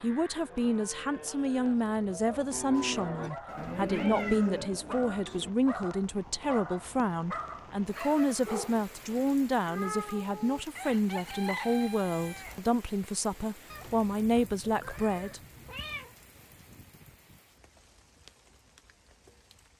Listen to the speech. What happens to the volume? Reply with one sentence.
The volume of the speech stays about the same.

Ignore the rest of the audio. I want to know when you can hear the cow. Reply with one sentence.
You can hear the cow from 0.0 to 5.5 s.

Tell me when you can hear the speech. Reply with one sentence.
The speech can be heard from 0.0 to 15.4 s.